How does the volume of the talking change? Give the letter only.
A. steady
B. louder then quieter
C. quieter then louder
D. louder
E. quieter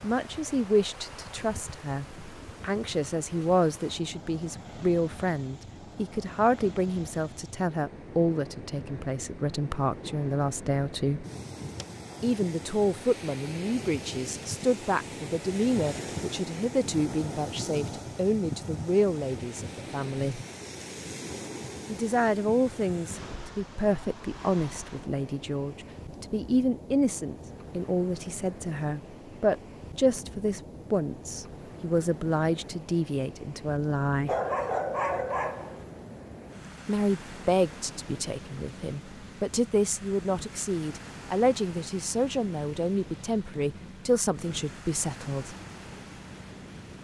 A.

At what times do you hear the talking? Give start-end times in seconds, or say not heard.
0.0-11.2, 12.2-20.4, 21.9-34.3, 36.9-45.5.